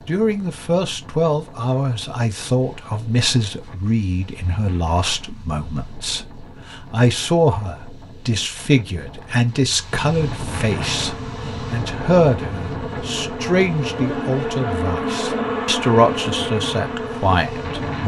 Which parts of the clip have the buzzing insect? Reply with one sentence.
You can hear the buzzing insect from 10.8 to 18.0 s.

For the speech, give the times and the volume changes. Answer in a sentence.
The speech can be heard from 0.1 to 18.0 s, at a steady volume.